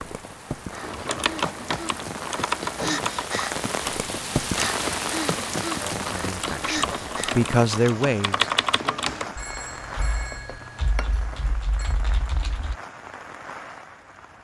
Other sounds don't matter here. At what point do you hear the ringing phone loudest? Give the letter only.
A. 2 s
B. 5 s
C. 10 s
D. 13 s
C.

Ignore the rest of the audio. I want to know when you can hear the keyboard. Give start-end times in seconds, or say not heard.
0.8-12.8.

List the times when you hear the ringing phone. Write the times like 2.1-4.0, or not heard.
9.2-11.9.